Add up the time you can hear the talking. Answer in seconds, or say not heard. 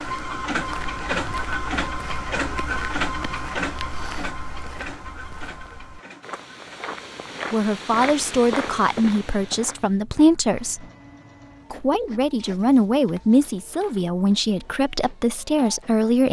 8 s.